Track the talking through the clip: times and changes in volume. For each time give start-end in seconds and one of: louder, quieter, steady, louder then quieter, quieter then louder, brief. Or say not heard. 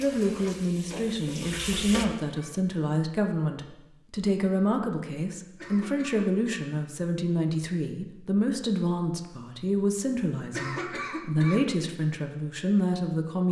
0.0-13.4 steady.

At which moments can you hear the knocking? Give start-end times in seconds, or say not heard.
not heard.